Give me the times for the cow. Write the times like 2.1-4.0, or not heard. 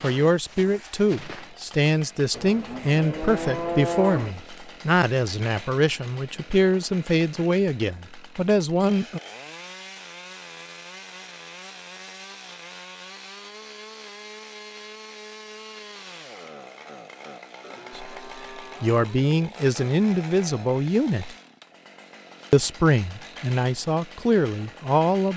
2.3-4.3, 17.6-19.5.